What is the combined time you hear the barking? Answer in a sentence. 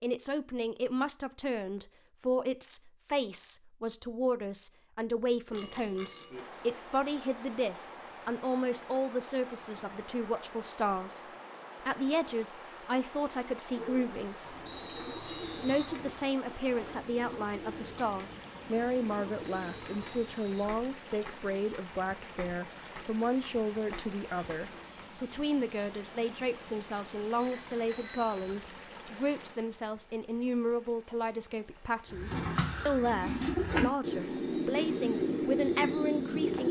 The barking can't be heard in this clip.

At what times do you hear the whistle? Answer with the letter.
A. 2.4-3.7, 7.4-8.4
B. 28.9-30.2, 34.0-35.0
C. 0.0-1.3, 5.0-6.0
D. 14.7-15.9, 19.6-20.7
D.